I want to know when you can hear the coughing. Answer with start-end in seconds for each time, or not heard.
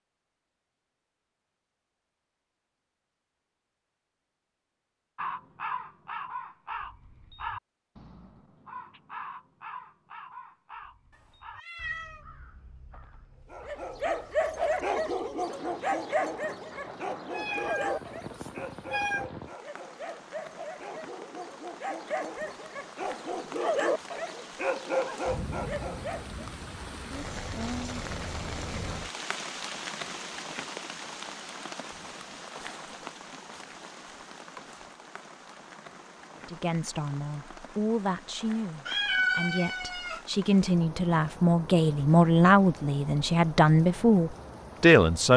not heard.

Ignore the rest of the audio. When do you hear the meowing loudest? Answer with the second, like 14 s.
39 s.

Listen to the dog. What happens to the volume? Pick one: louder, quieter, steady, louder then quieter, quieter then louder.
quieter then louder.